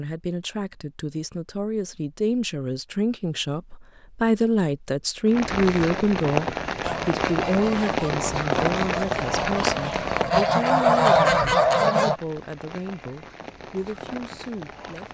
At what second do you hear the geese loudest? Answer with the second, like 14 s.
11 s.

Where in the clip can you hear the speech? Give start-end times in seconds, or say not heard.
0.0-15.0.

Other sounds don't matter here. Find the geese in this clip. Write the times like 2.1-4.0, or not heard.
6.8-12.2.